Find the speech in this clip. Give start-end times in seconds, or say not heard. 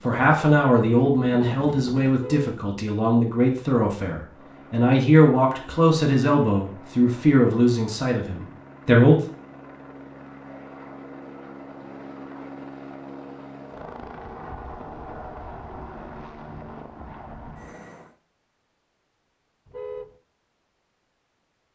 0.1-9.2.